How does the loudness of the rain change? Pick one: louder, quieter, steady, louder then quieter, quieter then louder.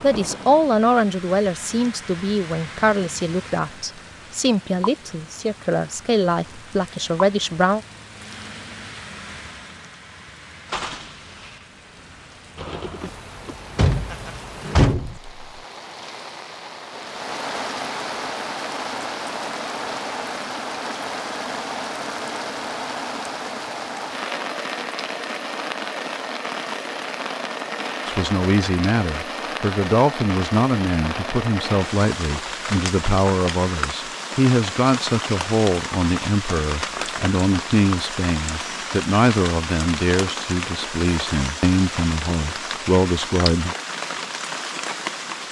louder.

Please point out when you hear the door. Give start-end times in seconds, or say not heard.
13.4-15.2.